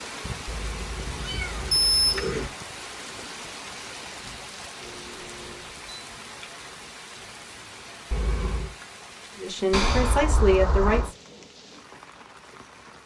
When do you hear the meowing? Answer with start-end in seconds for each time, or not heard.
0.5-2.5, 8.1-8.8.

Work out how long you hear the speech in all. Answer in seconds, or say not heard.
2 s.